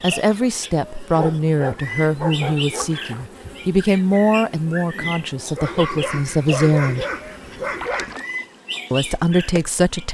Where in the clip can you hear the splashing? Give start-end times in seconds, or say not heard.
2.8-3.3, 7.8-8.3.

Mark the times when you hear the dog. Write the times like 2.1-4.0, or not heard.
1.1-3.0, 5.5-8.2.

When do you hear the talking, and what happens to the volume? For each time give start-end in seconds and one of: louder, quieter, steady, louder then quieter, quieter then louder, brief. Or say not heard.
0.0-7.0 steady
8.9-10.1 brief.